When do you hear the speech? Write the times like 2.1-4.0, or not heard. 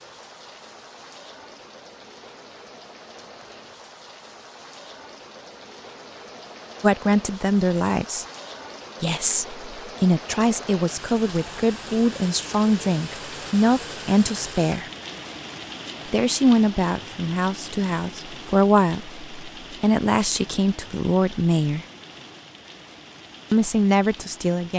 6.8-8.2, 9.0-14.9, 16.1-21.9, 23.5-24.7.